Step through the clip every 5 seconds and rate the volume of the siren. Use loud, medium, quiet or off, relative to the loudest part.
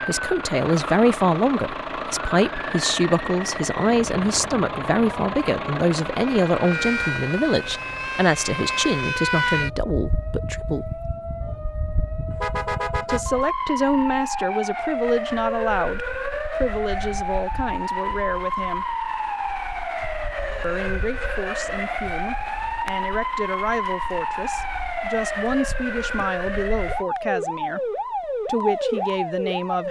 medium, loud, loud, loud, loud, loud.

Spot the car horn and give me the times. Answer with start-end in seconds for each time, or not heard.
12.3-13.4.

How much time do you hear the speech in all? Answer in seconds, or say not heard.
26 s.